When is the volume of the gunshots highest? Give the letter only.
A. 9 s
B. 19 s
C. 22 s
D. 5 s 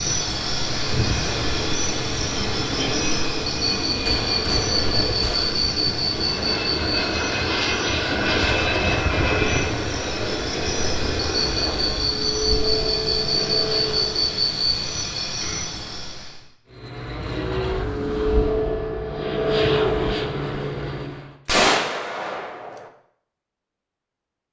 C.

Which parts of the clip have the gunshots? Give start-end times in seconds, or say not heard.
4.0-6.0, 21.4-22.9.